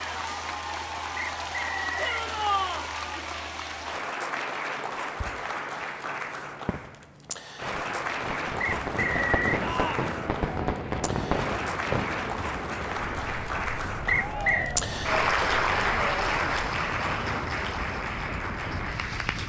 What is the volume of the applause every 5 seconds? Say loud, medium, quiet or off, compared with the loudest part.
medium, medium, medium, loud.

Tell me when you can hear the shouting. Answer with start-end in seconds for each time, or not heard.
1.9-2.9, 9.6-10.2, 14.2-14.9.